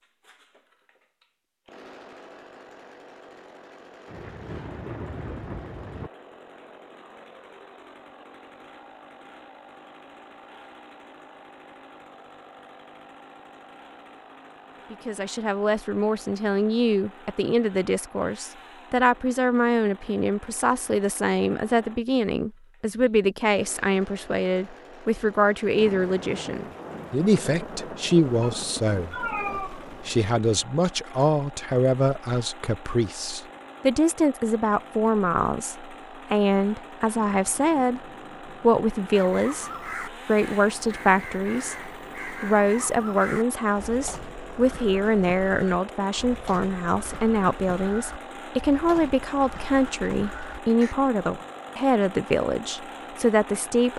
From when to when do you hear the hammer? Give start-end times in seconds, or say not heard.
not heard.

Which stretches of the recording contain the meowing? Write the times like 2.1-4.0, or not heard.
28.4-29.9.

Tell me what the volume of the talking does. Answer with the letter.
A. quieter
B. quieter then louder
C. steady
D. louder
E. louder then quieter
C.